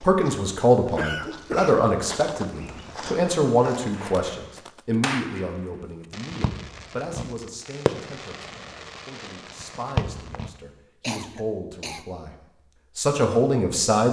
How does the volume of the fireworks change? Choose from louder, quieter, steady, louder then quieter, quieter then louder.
quieter then louder.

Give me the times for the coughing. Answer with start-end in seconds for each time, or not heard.
0.8-1.9, 11.0-12.1.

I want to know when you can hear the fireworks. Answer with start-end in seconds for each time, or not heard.
3.9-10.6.